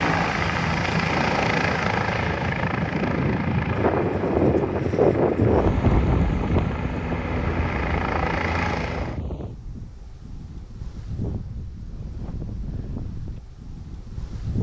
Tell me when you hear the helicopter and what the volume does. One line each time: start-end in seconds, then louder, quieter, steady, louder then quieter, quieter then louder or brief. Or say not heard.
0.0-9.2 quieter then louder.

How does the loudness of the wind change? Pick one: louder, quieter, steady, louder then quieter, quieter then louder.
louder then quieter.